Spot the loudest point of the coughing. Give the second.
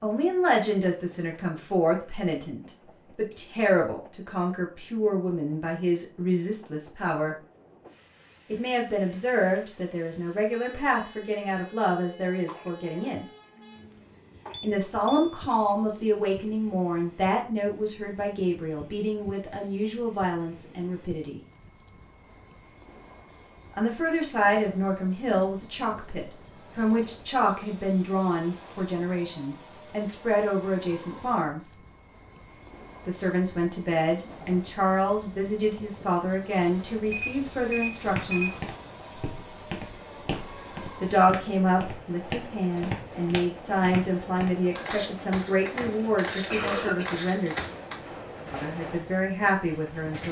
47 s.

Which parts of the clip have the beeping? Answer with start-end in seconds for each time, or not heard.
14.5-15.4, 37.1-38.6.